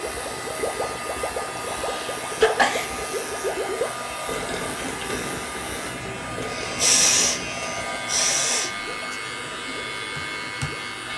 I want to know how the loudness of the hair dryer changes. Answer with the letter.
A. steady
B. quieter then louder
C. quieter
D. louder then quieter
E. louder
A.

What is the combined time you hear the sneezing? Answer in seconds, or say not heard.
4 s.